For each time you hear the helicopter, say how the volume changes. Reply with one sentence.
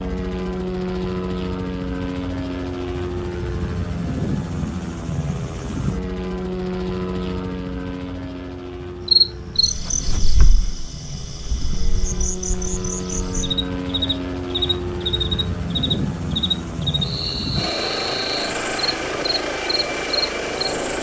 The helicopter can be heard from 0.0 to 20.9 s, getting quieter then louder.